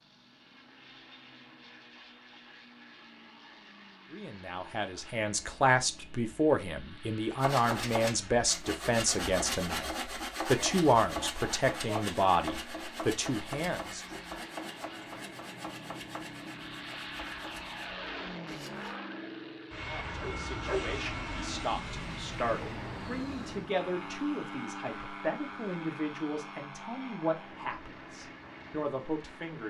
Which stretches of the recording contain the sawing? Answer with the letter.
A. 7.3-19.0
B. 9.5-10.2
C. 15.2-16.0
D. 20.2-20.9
A.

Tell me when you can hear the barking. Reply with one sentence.
You can hear the barking from 20.2 to 20.9 s.